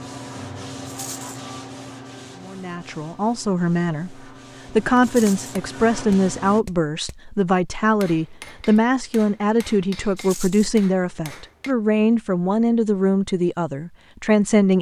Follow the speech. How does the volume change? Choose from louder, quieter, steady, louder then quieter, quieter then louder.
steady.